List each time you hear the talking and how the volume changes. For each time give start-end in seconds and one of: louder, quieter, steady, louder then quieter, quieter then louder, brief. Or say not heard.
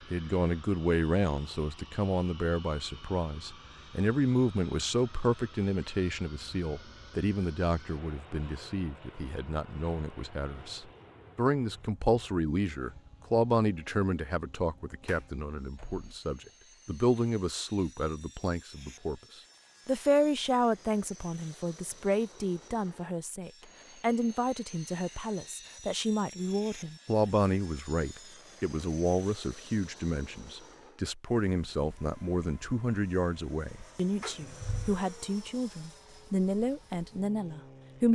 0.1-38.1 steady.